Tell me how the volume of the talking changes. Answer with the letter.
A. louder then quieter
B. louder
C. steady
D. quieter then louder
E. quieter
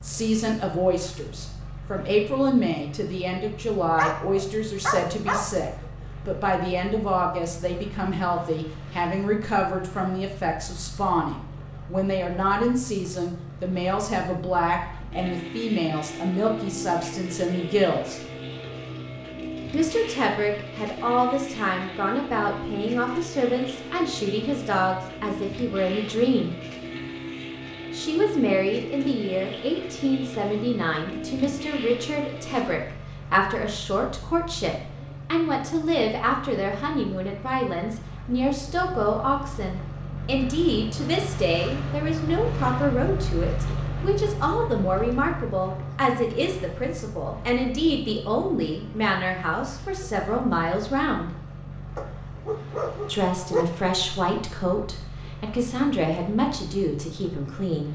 C.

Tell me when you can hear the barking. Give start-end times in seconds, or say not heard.
4.0-5.5, 52.0-53.6.